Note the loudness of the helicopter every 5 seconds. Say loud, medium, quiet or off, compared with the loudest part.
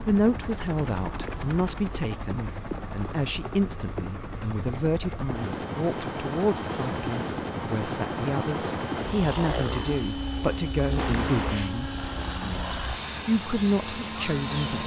medium, loud, loud.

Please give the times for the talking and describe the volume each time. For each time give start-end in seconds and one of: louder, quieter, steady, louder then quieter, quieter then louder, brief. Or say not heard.
0.0-14.8 steady.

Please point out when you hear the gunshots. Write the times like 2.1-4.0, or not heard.
10.9-11.8.